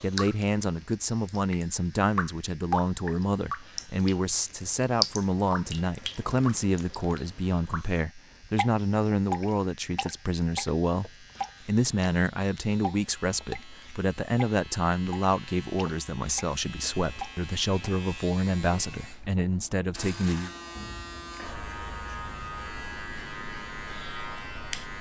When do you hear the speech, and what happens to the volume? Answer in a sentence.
The speech can be heard from 0.0 to 20.5 s, at a steady volume.